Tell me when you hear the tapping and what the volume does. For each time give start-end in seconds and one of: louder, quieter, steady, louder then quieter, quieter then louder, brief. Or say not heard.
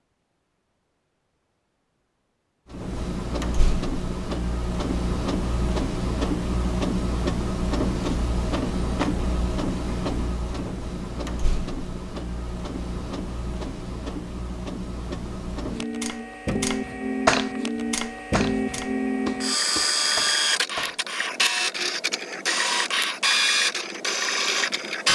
16.0-21.0 louder then quieter.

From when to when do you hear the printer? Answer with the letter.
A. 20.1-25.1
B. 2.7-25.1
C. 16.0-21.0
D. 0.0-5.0
B.